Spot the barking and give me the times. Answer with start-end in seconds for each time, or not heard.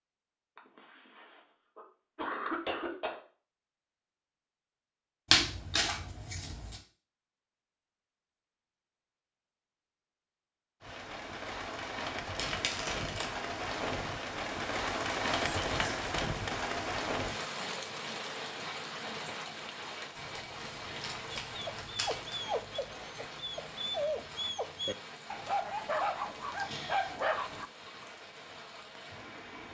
21.5-27.7.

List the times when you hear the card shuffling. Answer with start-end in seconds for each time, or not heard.
5.2-6.8, 12.3-13.4, 20.1-22.4.